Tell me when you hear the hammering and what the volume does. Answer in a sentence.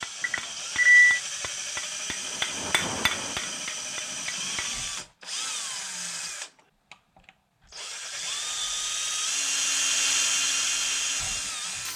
You can hear the hammering from 0.0 to 4.8 s, getting louder then quieter.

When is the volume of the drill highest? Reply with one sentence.
The loudest moment of the drill is at 10 seconds.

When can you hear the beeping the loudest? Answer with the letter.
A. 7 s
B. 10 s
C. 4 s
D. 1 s
D.